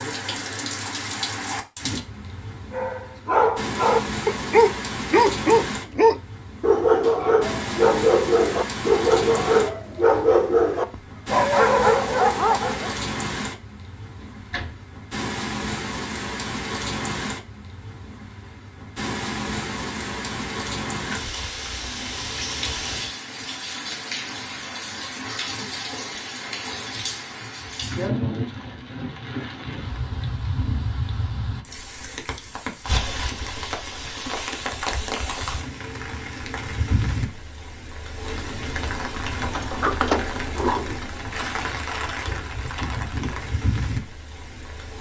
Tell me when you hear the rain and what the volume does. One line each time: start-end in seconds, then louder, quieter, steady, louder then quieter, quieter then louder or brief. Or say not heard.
0.0-44.9 steady.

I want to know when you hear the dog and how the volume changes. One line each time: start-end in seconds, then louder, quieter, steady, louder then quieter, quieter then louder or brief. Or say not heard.
2.7-12.9 steady.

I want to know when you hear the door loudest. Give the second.
40 s.